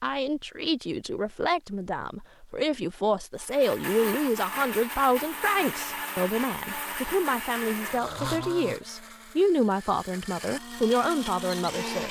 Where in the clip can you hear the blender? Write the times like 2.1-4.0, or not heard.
3.4-12.0.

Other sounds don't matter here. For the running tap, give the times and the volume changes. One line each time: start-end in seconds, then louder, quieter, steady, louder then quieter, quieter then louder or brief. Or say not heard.
not heard.